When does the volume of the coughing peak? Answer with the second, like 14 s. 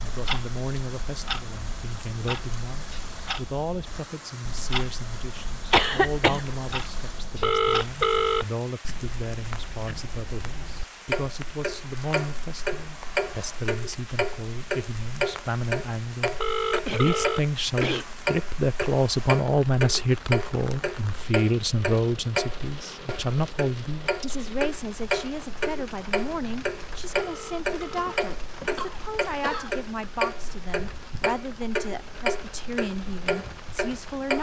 6 s.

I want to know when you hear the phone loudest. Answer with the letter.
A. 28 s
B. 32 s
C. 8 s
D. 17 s
C.